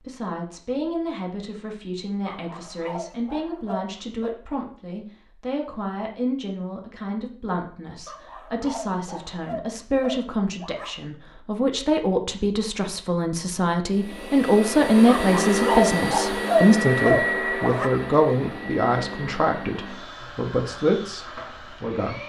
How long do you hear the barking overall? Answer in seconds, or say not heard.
8 s.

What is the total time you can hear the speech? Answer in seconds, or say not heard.
22 s.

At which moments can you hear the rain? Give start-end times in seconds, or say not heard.
not heard.